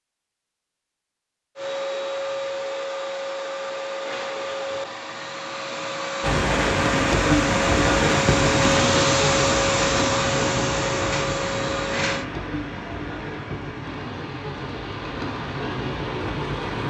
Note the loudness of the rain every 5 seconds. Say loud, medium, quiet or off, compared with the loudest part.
off, loud, medium, medium.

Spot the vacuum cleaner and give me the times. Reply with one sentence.
The vacuum cleaner can be heard from 1.6 to 12.2 s.